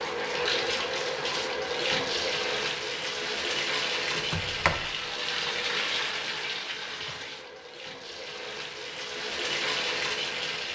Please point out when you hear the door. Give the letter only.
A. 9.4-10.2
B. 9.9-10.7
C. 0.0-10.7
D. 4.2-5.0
D.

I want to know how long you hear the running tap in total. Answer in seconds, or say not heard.
11 s.